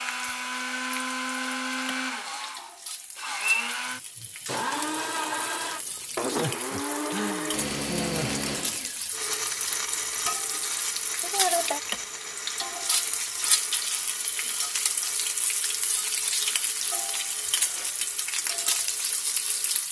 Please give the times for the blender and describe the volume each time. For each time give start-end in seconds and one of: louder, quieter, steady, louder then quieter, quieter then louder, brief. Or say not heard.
0.0-19.8 quieter.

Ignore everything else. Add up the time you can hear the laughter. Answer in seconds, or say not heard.
2 s.